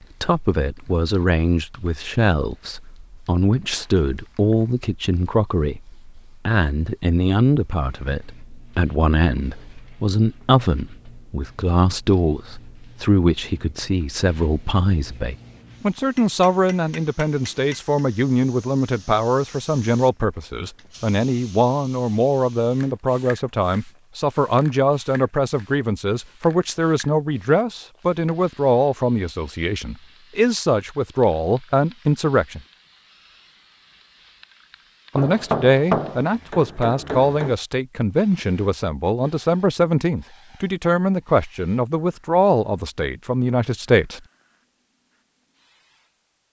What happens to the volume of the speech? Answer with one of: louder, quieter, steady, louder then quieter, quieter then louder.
steady.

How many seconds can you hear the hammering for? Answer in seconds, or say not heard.
4 s.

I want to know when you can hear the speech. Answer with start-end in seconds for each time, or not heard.
0.2-32.6, 35.1-44.2.